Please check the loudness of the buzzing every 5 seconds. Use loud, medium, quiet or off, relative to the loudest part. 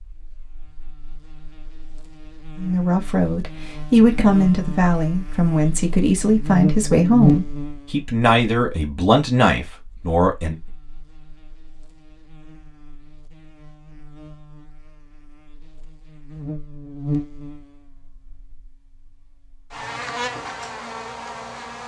quiet, loud, quiet, medium, medium.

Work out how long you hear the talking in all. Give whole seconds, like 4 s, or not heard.
8 s.